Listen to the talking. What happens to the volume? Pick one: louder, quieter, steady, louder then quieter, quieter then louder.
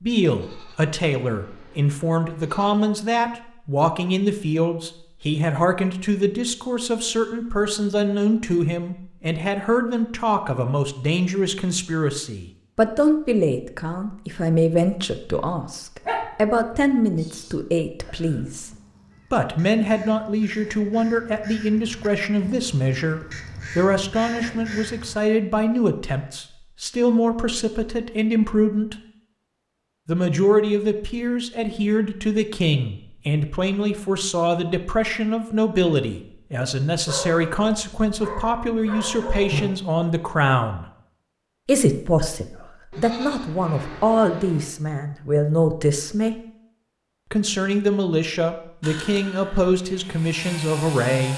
steady.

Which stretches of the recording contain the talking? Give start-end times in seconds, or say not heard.
0.0-18.7, 19.3-28.9, 30.1-40.9, 41.6-46.4, 47.3-51.3.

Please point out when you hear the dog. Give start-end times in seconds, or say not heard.
16.1-17.6, 37.0-39.7.